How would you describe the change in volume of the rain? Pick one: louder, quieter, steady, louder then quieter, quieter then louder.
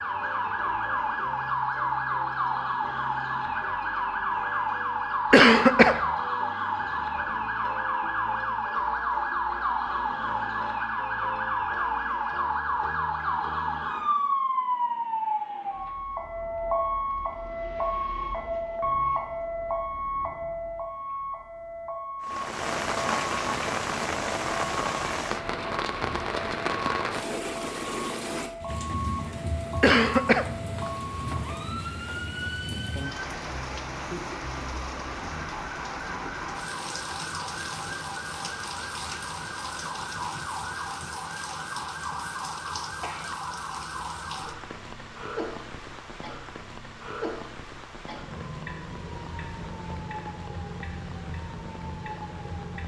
quieter.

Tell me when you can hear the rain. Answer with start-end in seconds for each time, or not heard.
22.2-52.8.